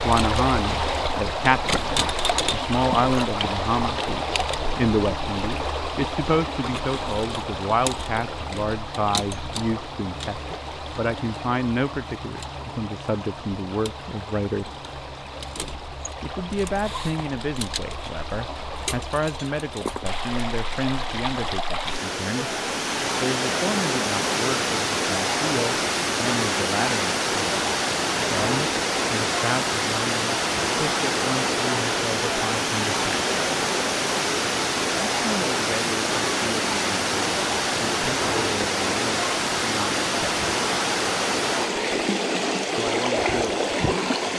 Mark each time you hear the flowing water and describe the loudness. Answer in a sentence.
The flowing water can be heard from 0.0 to 44.3 s, getting quieter then louder.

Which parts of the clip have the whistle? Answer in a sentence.
The whistle can't be heard in this clip.